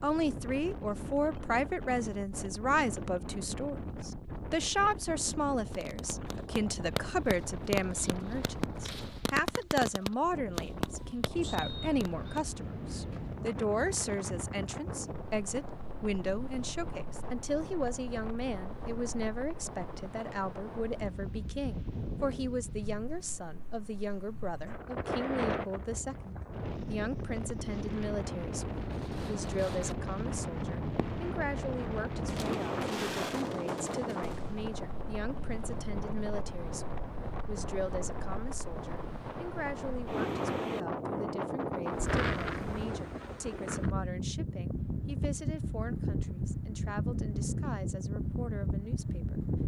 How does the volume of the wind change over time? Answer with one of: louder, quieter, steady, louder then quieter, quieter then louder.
louder.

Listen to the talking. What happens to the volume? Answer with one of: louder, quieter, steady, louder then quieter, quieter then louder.
quieter.